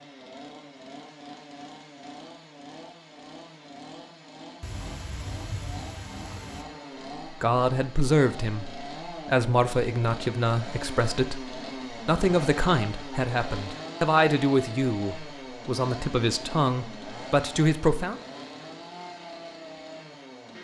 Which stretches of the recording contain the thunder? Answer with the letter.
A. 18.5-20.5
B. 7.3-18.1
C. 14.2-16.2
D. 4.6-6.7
D.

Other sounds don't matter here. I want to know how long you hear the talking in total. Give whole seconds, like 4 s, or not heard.
11 s.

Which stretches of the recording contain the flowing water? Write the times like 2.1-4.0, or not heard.
not heard.